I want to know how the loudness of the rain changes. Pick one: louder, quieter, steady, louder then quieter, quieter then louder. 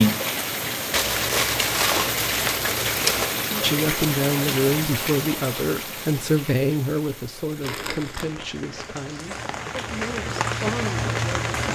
quieter then louder.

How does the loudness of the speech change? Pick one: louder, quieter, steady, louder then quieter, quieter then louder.
quieter.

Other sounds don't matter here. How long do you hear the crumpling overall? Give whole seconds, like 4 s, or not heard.
3 s.